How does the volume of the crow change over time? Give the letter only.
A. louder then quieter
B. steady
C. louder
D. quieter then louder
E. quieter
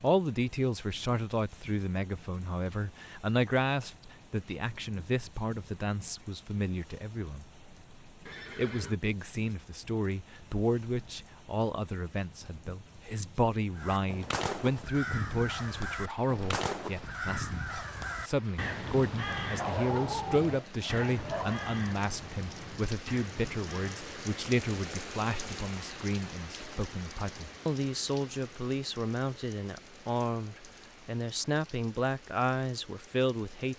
E.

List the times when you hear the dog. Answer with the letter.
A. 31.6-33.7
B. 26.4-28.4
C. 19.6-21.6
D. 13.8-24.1
C.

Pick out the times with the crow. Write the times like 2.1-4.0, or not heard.
13.8-24.1.